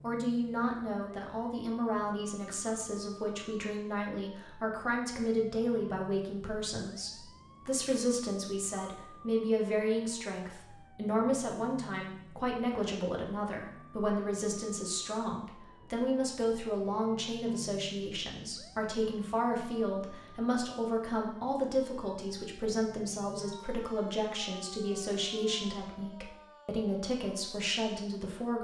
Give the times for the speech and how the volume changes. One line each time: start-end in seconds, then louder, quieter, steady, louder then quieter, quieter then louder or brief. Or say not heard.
0.0-28.5 steady.